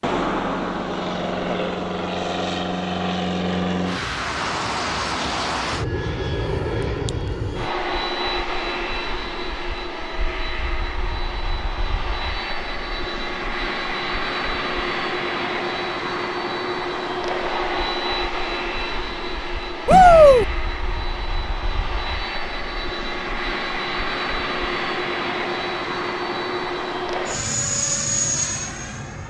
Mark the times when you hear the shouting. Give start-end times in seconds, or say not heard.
19.9-20.4.